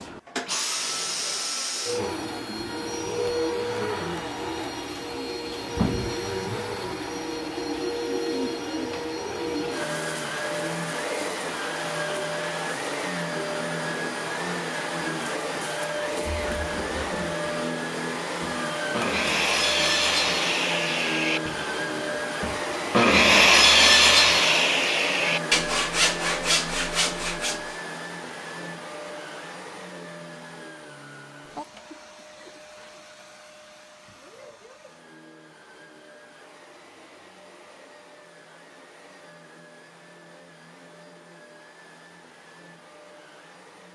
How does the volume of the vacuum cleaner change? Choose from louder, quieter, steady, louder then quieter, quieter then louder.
quieter.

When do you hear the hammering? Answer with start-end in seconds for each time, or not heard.
not heard.